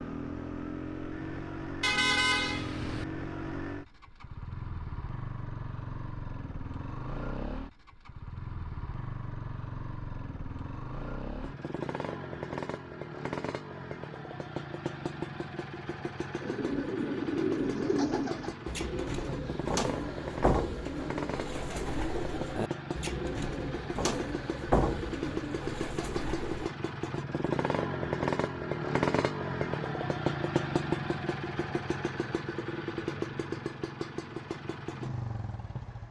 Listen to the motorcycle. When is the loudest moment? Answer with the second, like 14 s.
29 s.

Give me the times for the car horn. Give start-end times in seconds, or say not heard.
1.8-3.0.